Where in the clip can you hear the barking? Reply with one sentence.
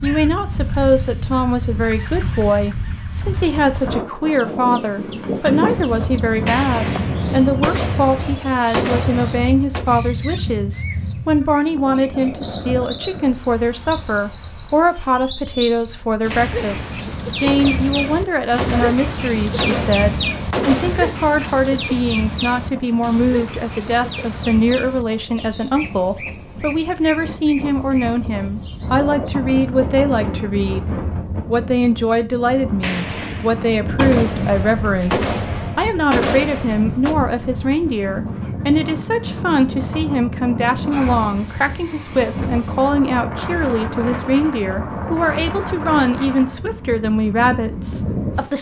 You can't hear the barking here.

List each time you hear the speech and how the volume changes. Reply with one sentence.
The speech can be heard from 0.0 to 48.5 s, at a steady volume.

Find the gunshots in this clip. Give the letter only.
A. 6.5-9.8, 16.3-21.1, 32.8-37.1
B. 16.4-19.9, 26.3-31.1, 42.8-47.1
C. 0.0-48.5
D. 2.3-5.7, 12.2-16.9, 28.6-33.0
A.